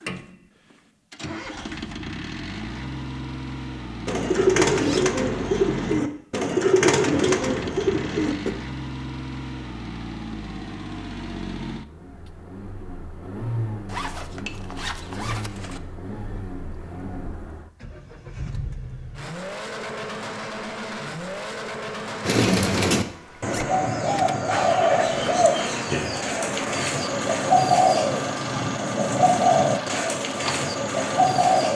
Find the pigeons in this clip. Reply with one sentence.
The pigeons can be heard from 4.0 to 8.5 s and from 22.2 to 31.7 s.